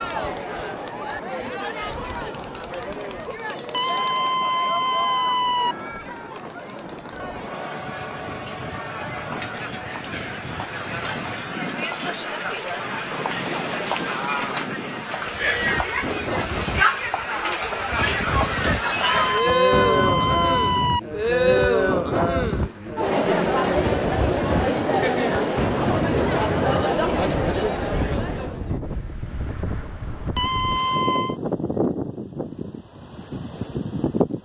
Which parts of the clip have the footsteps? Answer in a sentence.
You can't hear the footsteps here.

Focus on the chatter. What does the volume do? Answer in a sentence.
The volume of the chatter goes up.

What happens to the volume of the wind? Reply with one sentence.
The loudness of the wind goes up.